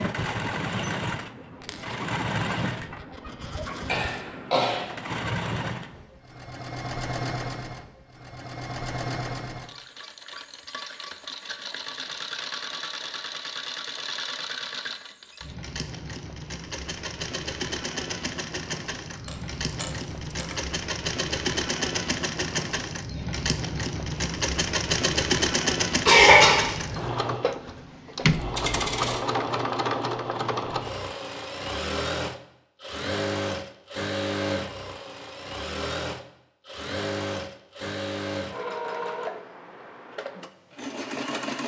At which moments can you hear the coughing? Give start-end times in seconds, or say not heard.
3.9-4.8, 26.1-27.1.